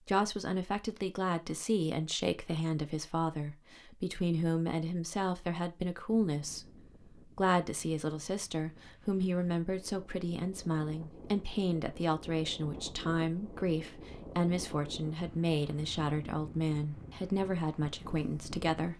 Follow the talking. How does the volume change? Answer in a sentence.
The volume of the talking stays about the same.